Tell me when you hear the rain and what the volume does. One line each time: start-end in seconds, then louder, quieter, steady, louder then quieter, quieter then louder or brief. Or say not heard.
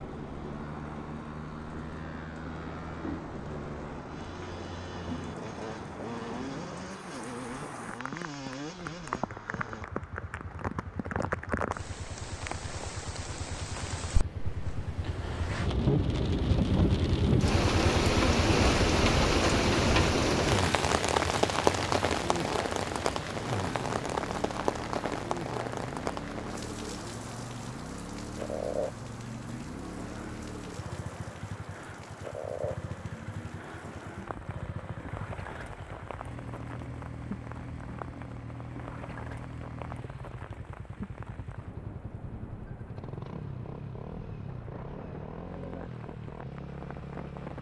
0.0-47.5 louder then quieter.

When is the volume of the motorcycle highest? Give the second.
17 s.